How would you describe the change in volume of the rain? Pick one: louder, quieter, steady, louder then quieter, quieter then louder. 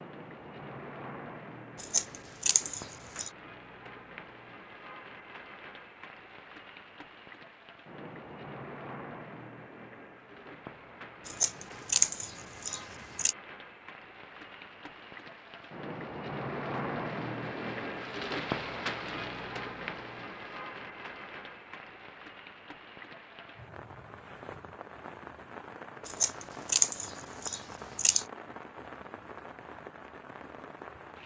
louder then quieter.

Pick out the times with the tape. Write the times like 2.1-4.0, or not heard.
not heard.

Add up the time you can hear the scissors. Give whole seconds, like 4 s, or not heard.
6 s.